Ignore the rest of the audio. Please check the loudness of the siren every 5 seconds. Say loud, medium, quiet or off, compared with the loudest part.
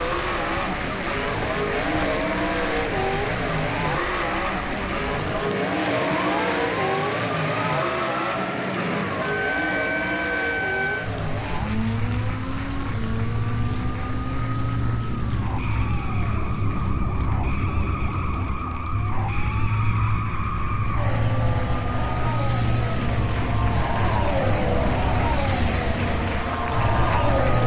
medium, loud, loud, loud, loud, loud.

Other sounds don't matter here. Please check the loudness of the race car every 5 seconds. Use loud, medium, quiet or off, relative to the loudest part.
loud, loud, medium, medium, loud, loud.